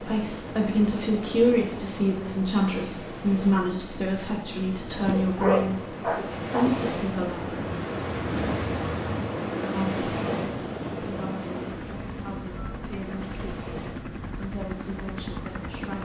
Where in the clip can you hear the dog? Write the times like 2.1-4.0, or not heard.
5.0-6.8.